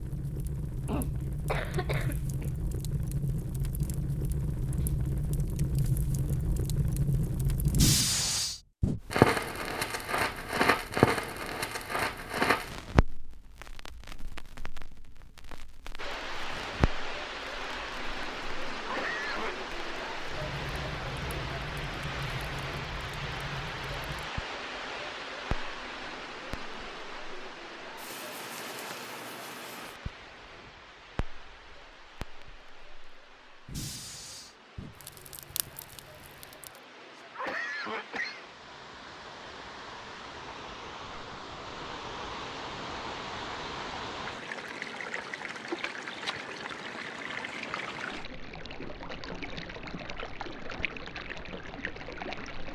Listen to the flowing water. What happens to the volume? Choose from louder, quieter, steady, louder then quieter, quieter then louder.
quieter then louder.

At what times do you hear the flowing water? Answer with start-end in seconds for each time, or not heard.
15.9-52.7.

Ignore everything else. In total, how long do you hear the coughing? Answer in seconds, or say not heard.
4 s.